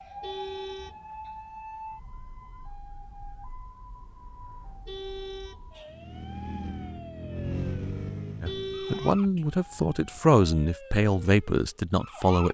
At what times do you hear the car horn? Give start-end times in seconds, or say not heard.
0.2-1.1, 4.8-6.0, 8.4-10.2.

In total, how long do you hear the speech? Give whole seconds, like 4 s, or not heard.
4 s.